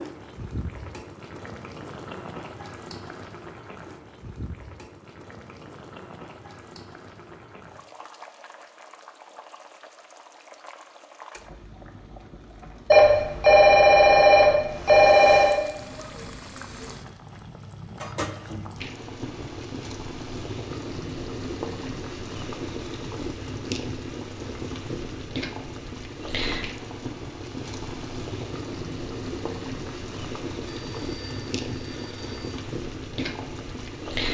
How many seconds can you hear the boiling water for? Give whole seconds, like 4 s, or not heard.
34 s.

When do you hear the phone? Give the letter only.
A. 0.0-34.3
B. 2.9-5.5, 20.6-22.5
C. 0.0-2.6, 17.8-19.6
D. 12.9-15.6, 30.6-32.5
D.